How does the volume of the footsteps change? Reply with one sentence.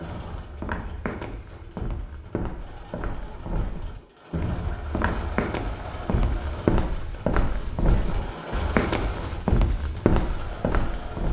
The loudness of the footsteps goes up.